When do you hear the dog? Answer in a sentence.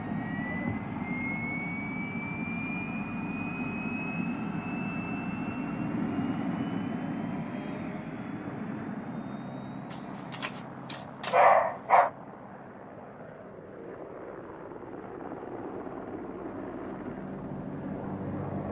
The dog can be heard from 9.9 to 12.1 s.